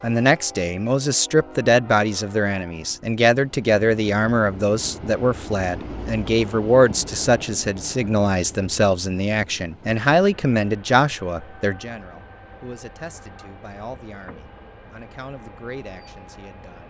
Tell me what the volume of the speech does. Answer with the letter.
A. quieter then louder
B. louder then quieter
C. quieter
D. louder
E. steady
C.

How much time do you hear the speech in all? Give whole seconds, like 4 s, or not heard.
17 s.